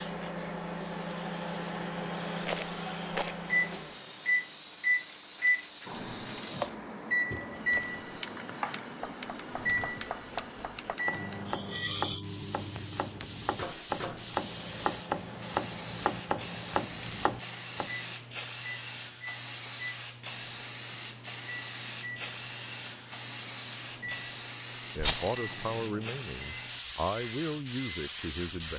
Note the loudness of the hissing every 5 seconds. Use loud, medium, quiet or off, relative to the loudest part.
medium, medium, medium, loud, loud, loud.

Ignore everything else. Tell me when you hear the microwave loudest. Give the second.
5 s.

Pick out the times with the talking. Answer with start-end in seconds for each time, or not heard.
24.9-28.7.